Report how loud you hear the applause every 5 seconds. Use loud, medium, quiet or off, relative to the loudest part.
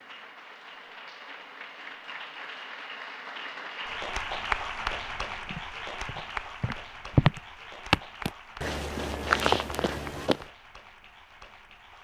loud, loud, quiet.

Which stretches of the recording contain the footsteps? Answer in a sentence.
You can hear the footsteps from 5.5 to 10.4 s.